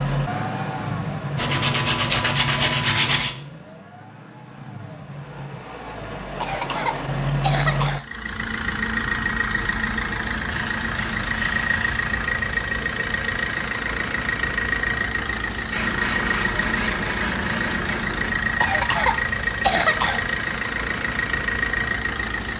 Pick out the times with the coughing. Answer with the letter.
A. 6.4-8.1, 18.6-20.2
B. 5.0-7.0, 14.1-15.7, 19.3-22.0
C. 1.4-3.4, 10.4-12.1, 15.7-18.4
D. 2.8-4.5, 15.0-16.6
A.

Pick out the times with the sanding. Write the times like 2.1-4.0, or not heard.
1.4-3.4, 10.4-12.1, 15.7-18.4.